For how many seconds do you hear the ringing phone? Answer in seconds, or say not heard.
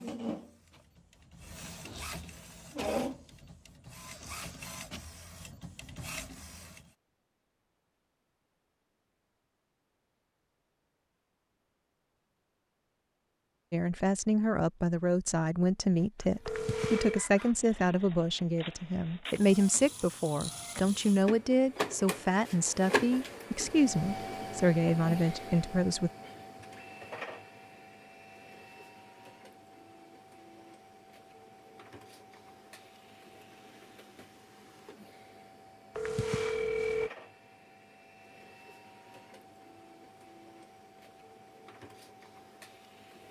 2 s.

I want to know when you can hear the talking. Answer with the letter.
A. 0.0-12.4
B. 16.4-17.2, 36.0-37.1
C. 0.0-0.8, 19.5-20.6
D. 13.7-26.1
D.